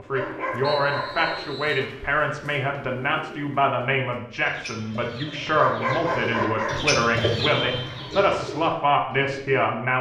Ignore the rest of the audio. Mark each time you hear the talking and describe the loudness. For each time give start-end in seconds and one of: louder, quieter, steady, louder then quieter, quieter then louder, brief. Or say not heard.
0.0-9.9 steady.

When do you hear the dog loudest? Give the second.
6 s.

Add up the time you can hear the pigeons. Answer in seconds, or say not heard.
10 s.